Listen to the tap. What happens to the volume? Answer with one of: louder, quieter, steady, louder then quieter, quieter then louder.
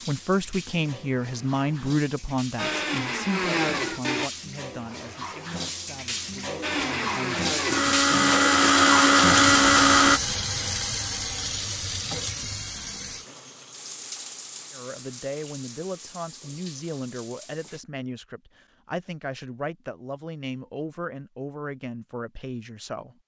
louder then quieter.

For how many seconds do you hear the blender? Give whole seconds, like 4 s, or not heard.
5 s.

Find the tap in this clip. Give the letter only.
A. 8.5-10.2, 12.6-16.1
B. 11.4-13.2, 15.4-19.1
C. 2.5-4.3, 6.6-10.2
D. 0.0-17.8
D.